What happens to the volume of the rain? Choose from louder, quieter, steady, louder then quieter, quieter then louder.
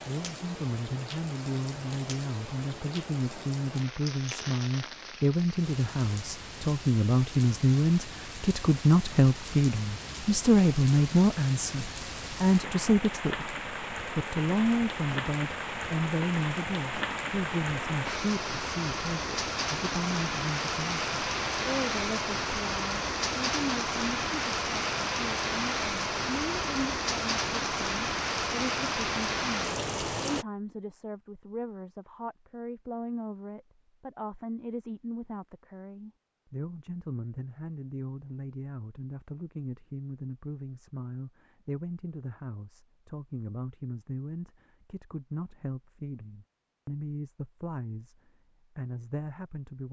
louder.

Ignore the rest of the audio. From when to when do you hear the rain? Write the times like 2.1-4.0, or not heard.
0.0-30.4.